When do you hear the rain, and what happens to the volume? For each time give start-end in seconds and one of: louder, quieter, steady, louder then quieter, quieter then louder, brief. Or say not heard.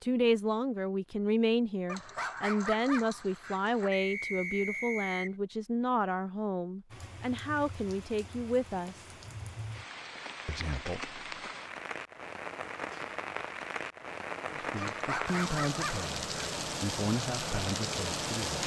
6.9-18.6 louder.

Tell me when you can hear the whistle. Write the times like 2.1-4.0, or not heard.
3.9-5.3.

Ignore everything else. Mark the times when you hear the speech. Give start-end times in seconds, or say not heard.
0.0-9.2, 10.4-11.2, 14.5-18.6.